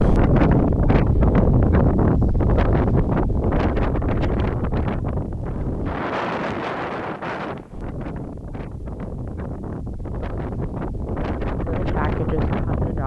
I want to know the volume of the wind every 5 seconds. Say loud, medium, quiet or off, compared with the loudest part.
loud, medium, medium.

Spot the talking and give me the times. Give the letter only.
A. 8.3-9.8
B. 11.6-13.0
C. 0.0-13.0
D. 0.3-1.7
B.